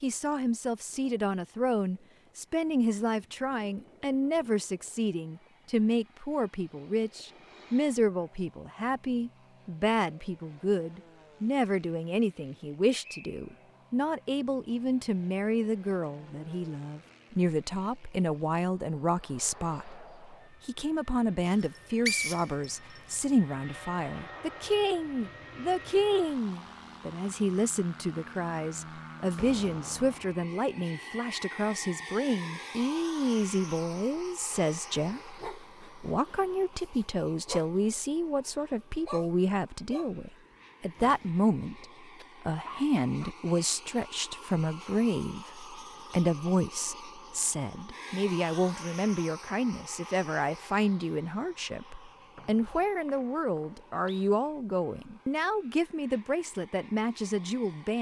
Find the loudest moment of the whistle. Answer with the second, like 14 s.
22 s.